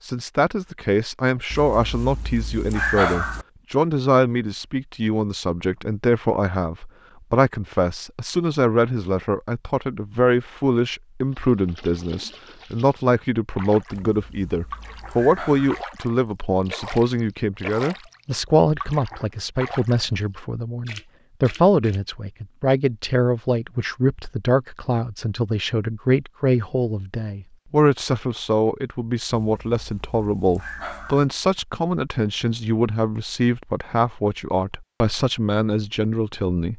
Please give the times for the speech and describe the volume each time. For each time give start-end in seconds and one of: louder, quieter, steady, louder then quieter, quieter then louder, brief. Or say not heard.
0.0-36.7 steady.